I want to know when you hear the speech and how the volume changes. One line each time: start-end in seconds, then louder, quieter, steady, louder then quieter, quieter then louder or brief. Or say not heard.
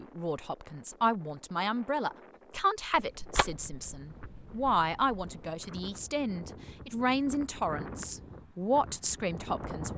0.0-9.9 steady.